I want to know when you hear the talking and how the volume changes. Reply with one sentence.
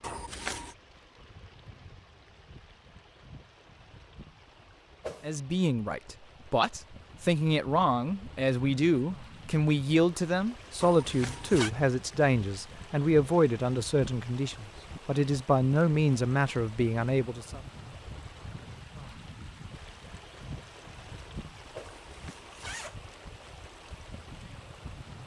You can hear the talking from 5.2 to 17.6 s, at a steady volume.